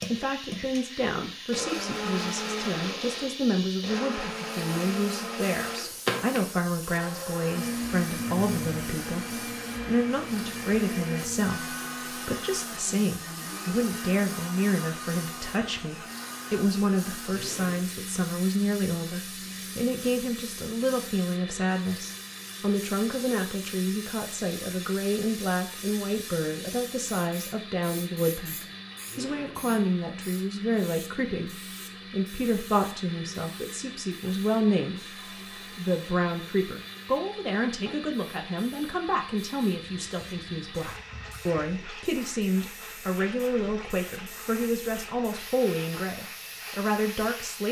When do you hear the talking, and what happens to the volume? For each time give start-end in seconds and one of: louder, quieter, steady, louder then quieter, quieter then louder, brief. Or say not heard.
0.1-47.6 steady.